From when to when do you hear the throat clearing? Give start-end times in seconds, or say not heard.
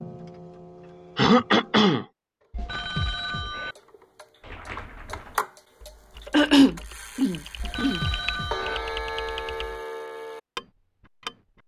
1.1-2.0, 6.3-8.0.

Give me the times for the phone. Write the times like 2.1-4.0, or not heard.
2.5-3.8, 7.5-8.8.